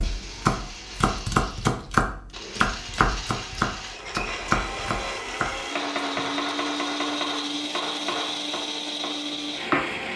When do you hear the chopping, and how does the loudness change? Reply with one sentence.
You can hear the chopping from 0.0 to 10.1 s, getting quieter.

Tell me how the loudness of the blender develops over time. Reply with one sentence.
The loudness of the blender goes up.